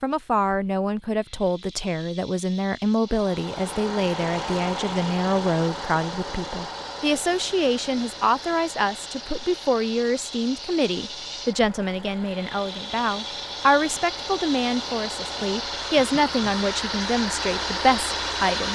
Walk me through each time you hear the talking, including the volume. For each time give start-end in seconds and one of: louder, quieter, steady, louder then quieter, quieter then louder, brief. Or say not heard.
0.0-18.7 steady.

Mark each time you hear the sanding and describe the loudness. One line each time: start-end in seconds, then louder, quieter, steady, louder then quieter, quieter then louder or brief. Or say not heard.
not heard.